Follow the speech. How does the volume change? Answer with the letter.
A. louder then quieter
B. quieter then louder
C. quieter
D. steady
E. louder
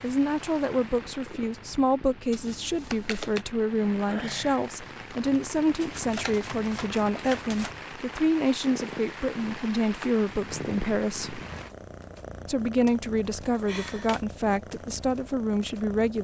D.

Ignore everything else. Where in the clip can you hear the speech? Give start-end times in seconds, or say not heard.
0.0-11.4, 12.4-16.1.